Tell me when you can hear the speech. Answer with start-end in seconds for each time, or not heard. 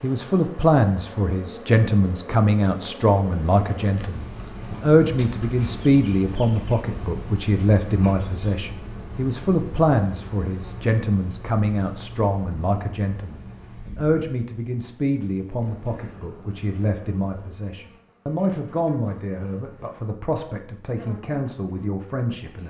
0.0-22.6.